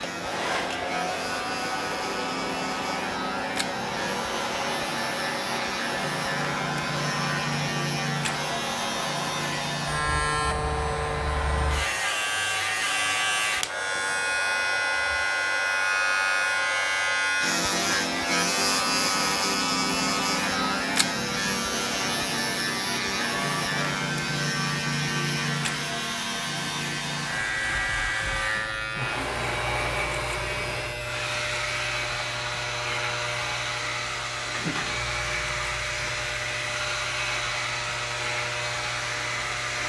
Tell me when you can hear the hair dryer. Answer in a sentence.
The hair dryer can be heard from 0.0 to 39.8 s.